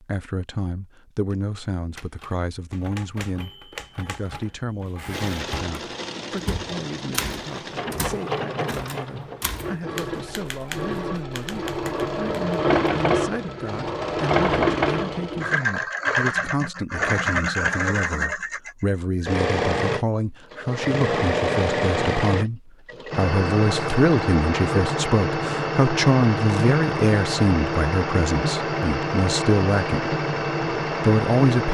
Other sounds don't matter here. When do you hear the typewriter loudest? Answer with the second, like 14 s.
7 s.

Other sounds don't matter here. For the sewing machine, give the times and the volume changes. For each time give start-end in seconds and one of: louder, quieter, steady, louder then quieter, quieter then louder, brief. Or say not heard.
5.1-31.6 louder.